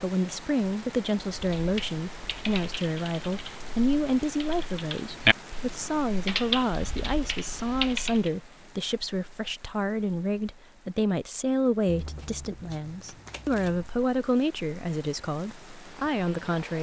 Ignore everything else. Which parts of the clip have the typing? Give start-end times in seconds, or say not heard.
1.3-8.3.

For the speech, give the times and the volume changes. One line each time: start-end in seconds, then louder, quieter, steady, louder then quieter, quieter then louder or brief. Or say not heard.
0.0-16.7 steady.